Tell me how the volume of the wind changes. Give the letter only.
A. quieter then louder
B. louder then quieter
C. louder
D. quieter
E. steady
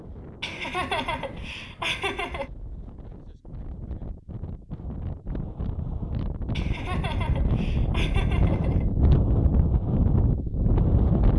C.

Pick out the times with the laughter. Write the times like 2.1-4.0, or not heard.
0.4-2.5, 6.5-8.9.